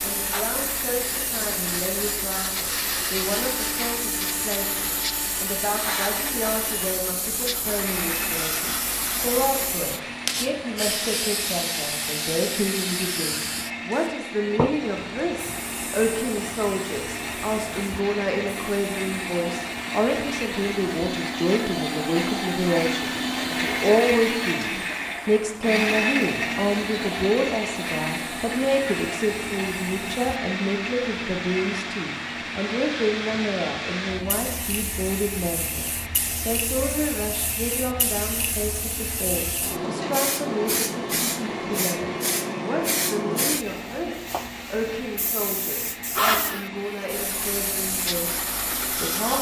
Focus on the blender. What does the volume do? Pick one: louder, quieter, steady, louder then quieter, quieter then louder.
louder then quieter.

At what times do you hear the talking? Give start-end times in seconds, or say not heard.
0.0-49.3.